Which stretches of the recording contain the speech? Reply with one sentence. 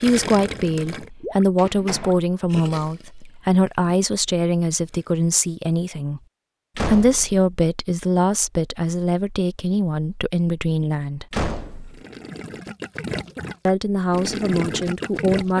The speech can be heard from 0.0 to 6.2 s, from 6.8 to 11.2 s and from 13.7 to 15.5 s.